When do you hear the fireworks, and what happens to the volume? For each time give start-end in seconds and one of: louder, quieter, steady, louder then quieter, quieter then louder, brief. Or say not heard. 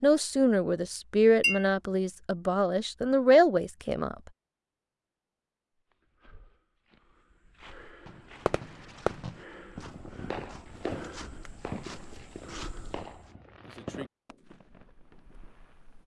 8.1-16.0 quieter.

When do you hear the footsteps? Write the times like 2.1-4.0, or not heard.
5.8-13.3.